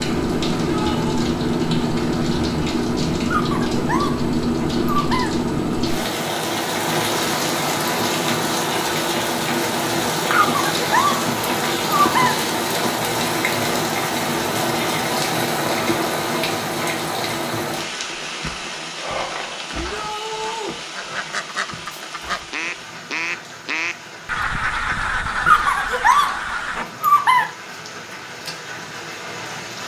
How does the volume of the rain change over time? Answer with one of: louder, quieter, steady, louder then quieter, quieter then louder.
quieter.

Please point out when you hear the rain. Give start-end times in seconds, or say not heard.
0.0-29.8.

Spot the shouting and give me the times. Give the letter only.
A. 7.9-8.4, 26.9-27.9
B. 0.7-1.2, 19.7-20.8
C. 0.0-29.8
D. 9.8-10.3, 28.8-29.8
B.